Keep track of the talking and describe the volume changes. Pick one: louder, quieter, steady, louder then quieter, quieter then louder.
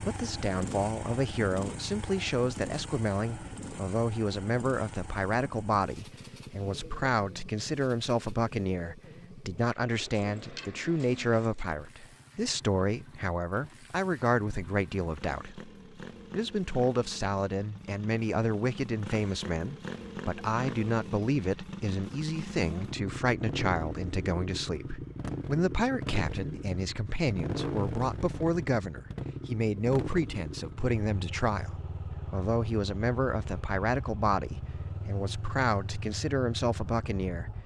steady.